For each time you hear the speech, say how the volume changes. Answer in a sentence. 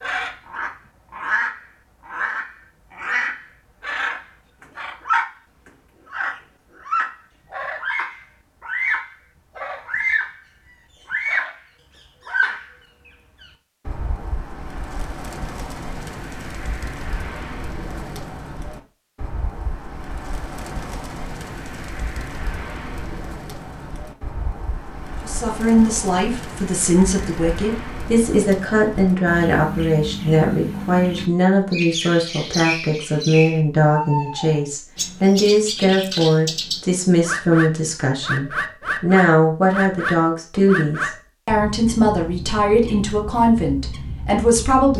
The speech can be heard from 25.2 to 44.9 s, at a steady volume.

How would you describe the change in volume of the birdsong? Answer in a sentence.
The volume of the birdsong goes down, then up.